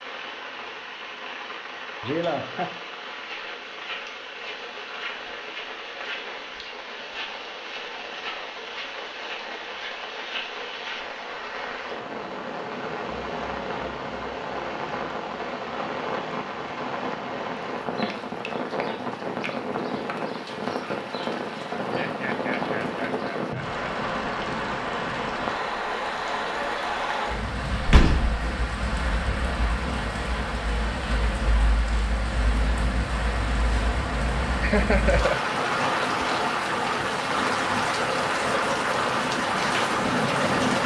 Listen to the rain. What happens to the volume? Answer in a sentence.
The volume of the rain goes up.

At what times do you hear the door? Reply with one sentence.
You can hear the door from 27.8 to 28.4 s.